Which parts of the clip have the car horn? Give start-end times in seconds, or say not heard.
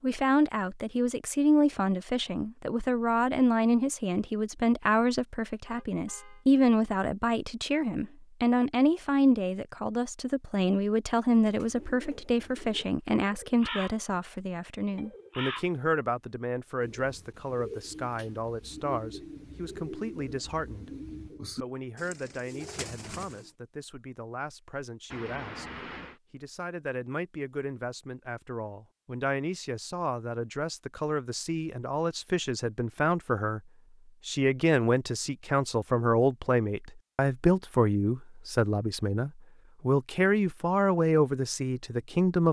5.7-6.5, 25.1-26.2.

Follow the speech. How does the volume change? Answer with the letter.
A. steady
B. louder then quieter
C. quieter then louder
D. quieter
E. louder
C.